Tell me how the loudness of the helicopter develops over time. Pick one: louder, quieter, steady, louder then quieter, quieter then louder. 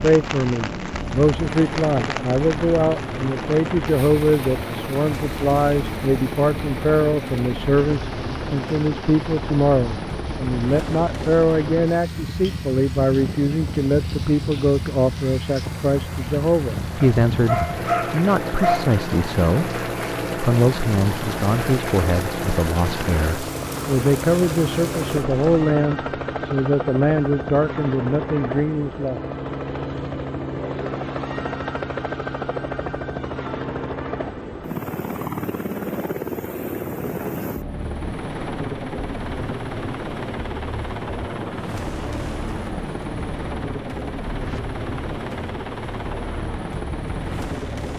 steady.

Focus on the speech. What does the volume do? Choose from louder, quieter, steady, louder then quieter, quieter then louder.
steady.